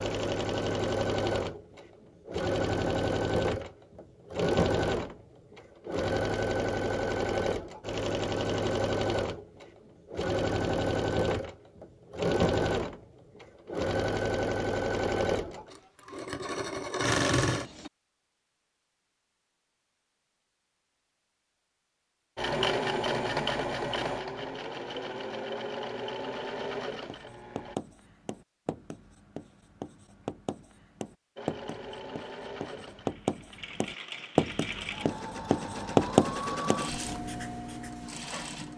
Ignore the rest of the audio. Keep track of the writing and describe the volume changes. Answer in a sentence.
The volume of the writing goes up.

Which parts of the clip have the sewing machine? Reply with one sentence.
You can hear the sewing machine from 0.0 to 17.9 s, from 22.4 to 27.8 s and from 31.4 to 38.7 s.